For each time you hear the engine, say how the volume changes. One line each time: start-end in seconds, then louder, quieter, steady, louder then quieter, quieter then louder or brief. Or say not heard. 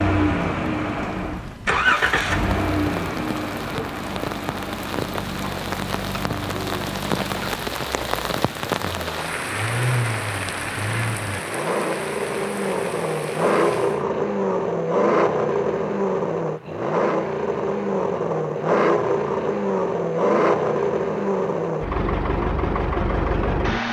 0.0-23.8 quieter then louder.